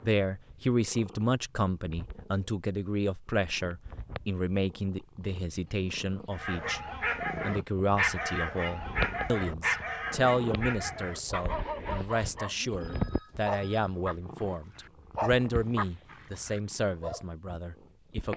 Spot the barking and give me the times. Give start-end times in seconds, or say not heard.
6.3-17.2.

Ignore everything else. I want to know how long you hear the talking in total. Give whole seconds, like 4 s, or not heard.
18 s.